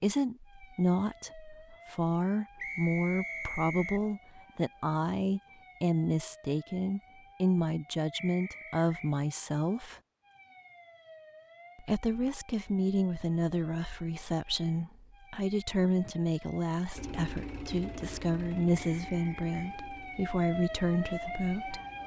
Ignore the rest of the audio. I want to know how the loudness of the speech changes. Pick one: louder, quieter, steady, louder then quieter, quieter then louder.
steady.